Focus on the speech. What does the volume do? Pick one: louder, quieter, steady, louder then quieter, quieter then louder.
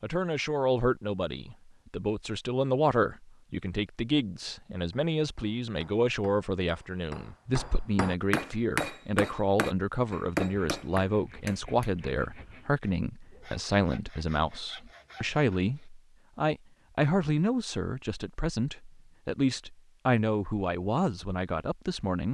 steady.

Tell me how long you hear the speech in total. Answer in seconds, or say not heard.
22 s.